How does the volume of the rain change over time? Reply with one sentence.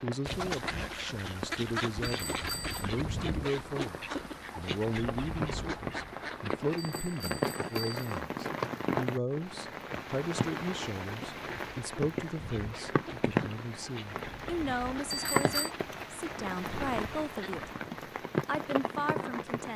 The loudness of the rain goes up.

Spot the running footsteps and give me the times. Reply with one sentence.
The running footsteps can't be heard in this clip.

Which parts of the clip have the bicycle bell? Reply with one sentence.
The bicycle bell can be heard from 2.0 to 2.9 s, from 6.8 to 8.2 s and from 15.1 to 15.7 s.